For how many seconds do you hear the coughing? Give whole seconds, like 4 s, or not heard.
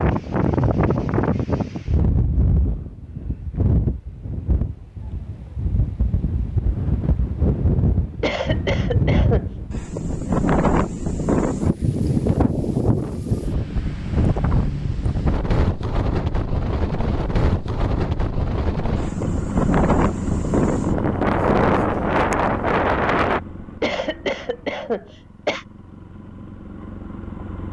3 s.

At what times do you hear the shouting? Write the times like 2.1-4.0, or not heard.
not heard.